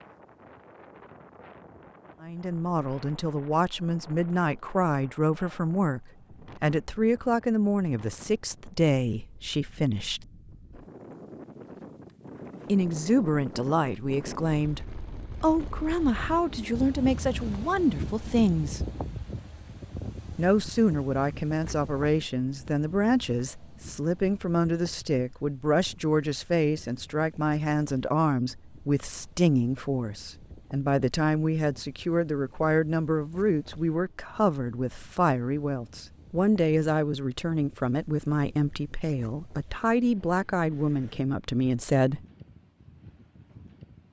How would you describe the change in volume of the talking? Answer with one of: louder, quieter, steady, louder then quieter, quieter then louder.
steady.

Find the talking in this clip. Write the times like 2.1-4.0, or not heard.
2.2-10.2, 12.7-18.9, 20.4-42.2.